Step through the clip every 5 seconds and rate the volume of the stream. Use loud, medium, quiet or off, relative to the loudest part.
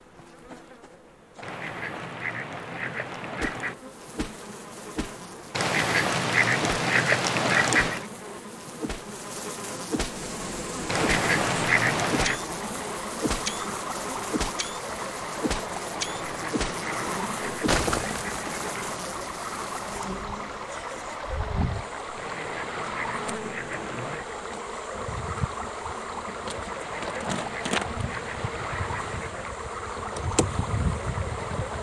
off, off, loud, loud, loud, loud, loud.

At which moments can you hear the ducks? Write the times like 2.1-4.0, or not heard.
1.4-3.8, 5.5-8.1, 10.8-12.4, 16.1-19.0, 22.1-24.2, 26.7-29.6.